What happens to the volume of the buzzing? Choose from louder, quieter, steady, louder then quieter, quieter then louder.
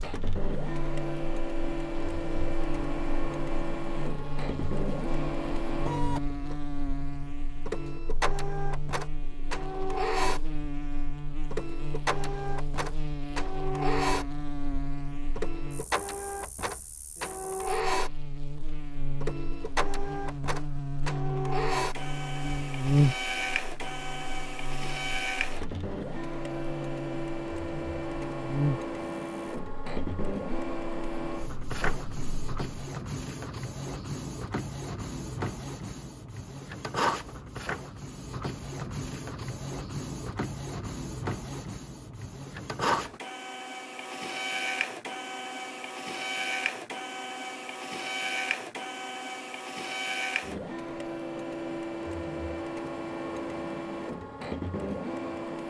louder then quieter.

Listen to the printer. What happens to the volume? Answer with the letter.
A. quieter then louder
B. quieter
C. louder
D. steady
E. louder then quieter
D.